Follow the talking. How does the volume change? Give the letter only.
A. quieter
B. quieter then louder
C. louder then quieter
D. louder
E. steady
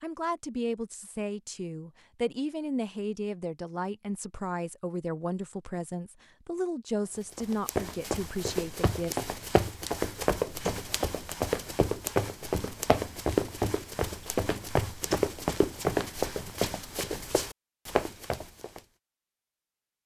E.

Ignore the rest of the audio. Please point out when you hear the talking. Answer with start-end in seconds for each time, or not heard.
0.0-9.2.